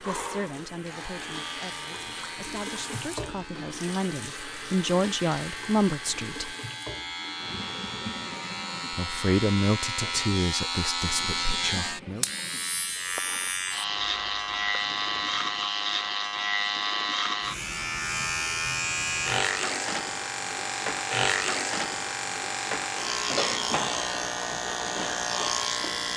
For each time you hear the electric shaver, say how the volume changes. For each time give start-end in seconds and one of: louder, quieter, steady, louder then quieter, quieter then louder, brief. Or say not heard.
0.0-26.1 louder.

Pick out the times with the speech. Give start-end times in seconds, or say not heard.
0.0-6.5, 8.9-12.2.